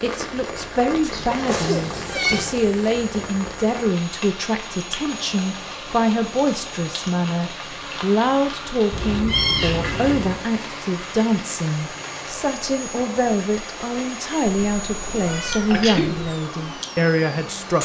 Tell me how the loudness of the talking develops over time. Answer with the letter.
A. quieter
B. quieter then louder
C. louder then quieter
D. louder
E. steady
E.